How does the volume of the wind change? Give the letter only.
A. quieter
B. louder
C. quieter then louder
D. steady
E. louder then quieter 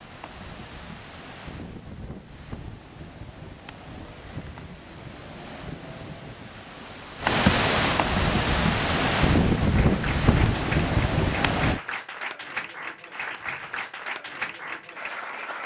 B.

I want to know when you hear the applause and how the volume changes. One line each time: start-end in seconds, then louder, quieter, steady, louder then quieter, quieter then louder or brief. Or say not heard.
9.6-15.6 steady.